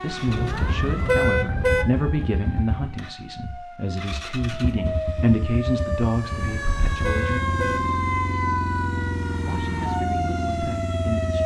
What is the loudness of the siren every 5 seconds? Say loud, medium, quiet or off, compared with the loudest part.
medium, loud, loud.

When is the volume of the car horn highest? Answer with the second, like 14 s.
1 s.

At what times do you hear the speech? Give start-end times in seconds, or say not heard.
0.0-7.5, 9.4-11.4.